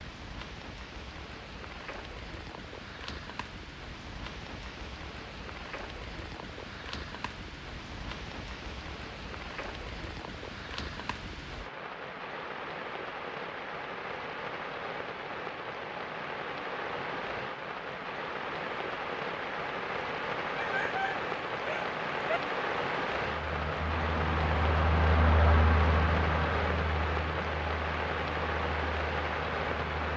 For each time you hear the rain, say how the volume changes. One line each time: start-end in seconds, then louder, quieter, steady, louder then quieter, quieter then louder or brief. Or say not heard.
0.0-30.1 louder.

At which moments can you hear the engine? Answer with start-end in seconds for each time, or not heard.
23.1-30.1.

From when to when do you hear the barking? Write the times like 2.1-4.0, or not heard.
20.6-22.4.